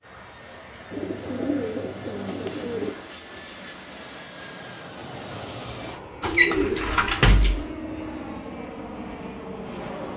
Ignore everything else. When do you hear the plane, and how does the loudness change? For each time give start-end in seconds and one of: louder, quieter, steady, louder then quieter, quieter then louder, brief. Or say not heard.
0.0-10.1 louder.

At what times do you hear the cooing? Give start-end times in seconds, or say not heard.
0.9-2.9, 6.2-7.7.